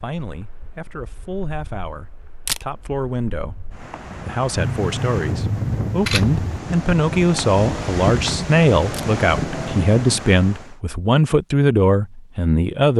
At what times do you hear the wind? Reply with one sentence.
The wind can be heard from 0.2 to 10.8 s.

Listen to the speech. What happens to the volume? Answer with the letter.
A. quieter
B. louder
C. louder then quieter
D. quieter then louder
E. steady
B.